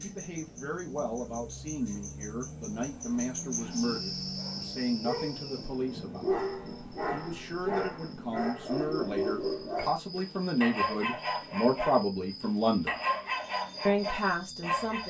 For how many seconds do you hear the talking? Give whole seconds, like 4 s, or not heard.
13 s.